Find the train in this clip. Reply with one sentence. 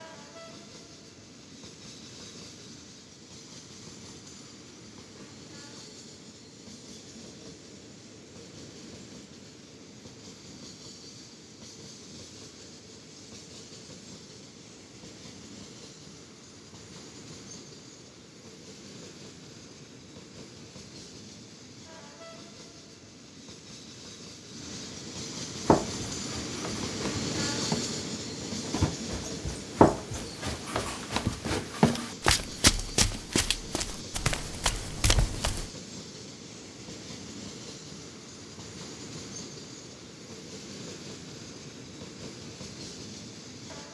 You can hear the train from 0.0 to 43.8 s.